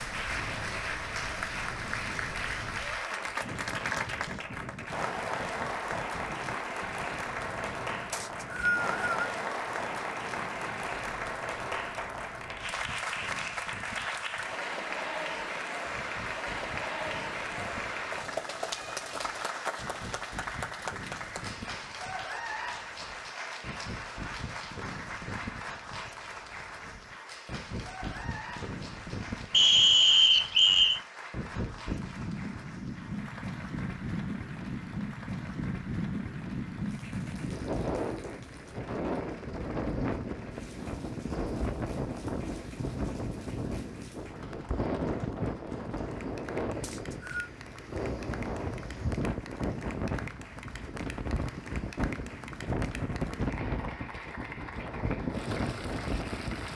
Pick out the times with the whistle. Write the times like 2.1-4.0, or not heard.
8.1-9.3, 29.5-31.0, 46.8-47.5.